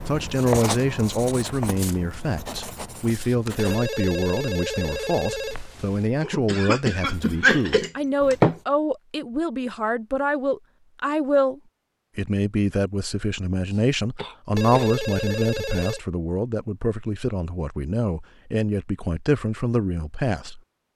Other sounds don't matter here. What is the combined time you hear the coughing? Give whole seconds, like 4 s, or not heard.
4 s.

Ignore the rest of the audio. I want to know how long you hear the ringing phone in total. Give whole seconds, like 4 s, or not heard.
4 s.